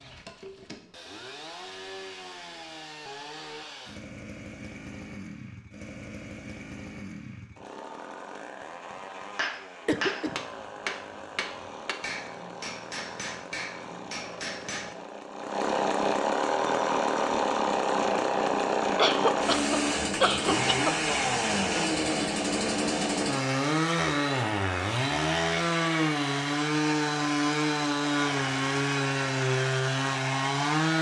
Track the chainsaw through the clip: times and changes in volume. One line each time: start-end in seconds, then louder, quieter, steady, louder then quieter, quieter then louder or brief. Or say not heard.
0.0-30.9 louder.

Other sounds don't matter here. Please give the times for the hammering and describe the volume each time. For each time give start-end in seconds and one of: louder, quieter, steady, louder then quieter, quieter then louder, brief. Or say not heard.
9.3-14.9 quieter.